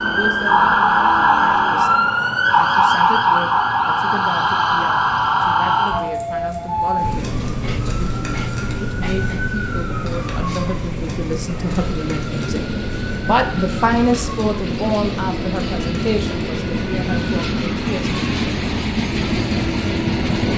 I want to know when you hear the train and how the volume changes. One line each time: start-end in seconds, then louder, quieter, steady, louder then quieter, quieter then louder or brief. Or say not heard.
0.1-20.5 louder.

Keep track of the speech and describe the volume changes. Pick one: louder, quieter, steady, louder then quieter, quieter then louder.
louder then quieter.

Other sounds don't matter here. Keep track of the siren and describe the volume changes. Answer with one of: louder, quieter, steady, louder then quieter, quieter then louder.
quieter.